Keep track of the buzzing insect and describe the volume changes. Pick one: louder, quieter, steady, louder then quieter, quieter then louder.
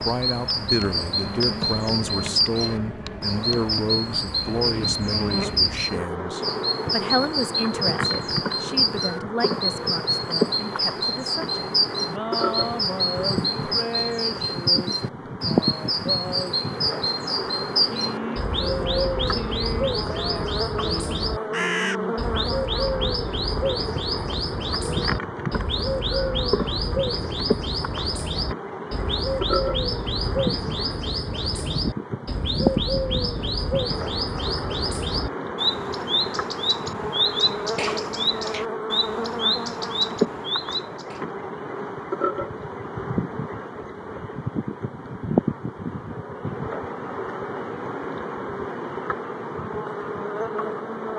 steady.